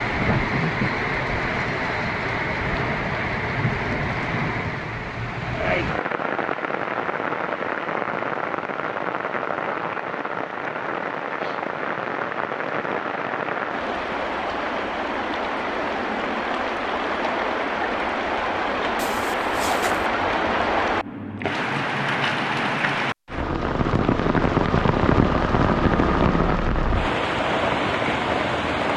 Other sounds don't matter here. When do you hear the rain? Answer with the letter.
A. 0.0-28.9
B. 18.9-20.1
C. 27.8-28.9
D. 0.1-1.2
A.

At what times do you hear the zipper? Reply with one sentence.
You can hear the zipper from 18.9 to 20.1 s.